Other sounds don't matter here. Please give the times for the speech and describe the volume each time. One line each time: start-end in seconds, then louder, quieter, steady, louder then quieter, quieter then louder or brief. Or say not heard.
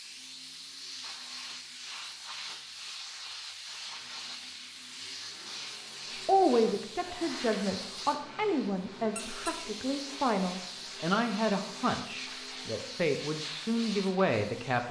6.0-14.8 steady.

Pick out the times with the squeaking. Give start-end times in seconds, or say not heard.
9.2-9.6.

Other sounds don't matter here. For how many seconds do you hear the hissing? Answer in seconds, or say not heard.
15 s.